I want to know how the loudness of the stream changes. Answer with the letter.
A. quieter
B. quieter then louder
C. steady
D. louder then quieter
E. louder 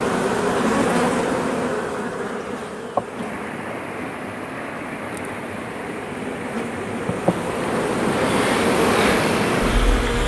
E.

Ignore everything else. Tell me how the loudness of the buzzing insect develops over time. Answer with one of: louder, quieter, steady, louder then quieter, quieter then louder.
quieter then louder.